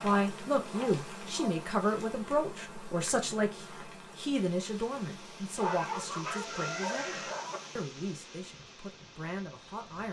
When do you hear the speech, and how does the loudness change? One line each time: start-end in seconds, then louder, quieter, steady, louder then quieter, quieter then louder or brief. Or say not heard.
0.0-10.0 quieter.